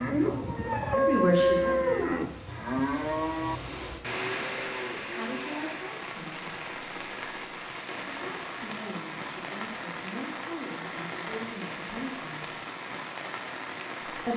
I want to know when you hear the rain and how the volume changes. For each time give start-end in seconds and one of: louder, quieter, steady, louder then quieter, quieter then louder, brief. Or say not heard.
0.0-14.3 louder.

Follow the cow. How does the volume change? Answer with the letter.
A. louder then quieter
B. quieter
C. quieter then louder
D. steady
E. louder
B.